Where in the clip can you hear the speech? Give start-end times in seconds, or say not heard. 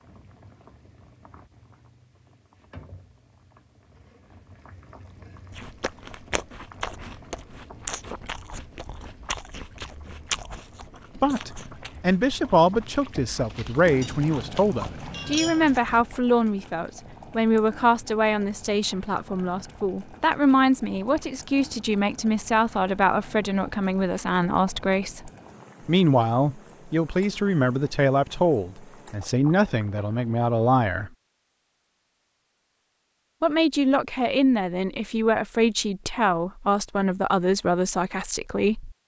11.2-31.1, 33.4-39.0.